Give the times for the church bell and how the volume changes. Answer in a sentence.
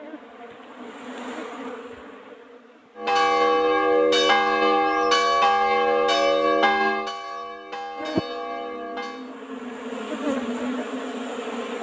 The church bell can be heard from 3.0 to 9.4 s, getting quieter.